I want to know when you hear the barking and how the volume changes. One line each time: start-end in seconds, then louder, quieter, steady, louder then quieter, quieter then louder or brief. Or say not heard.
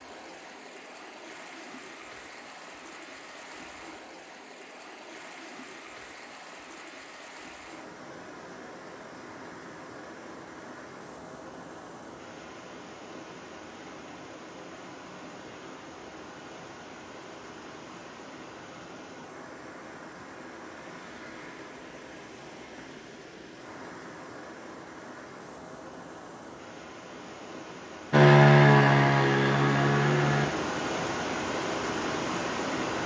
not heard.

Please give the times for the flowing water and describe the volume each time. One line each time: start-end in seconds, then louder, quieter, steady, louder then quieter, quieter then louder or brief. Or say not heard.
0.0-33.0 louder.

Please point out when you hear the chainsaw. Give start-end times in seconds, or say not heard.
28.1-30.5.